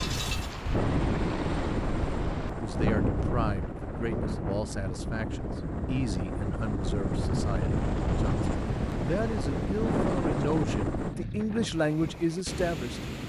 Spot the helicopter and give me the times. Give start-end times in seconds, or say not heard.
0.0-11.2.